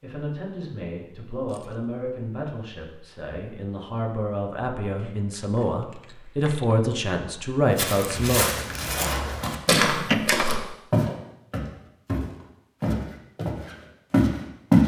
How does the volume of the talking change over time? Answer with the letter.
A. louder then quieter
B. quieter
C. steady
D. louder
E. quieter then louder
D.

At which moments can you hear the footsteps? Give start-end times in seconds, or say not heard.
7.8-14.8.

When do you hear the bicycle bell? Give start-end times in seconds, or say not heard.
not heard.